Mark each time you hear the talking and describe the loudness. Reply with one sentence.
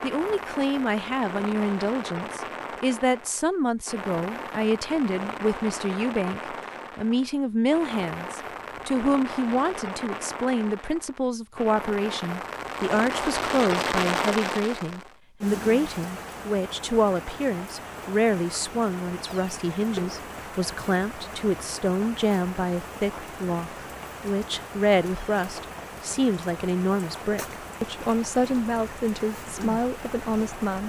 You can hear the talking from 0.0 to 30.8 s, at a steady volume.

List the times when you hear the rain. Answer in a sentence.
The rain can be heard from 0.0 to 30.8 s.